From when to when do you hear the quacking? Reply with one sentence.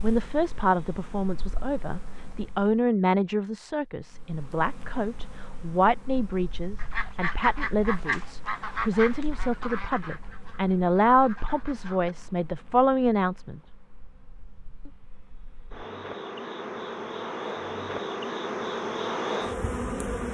You can hear the quacking from 6.8 to 12.2 s.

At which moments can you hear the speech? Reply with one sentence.
You can hear the speech from 0.0 to 13.6 s.